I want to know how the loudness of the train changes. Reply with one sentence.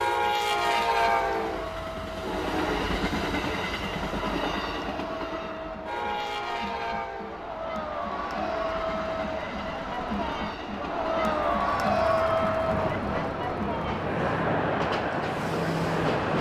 The volume of the train goes down, then up.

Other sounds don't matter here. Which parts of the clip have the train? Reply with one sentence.
You can hear the train from 0.0 to 16.3 s.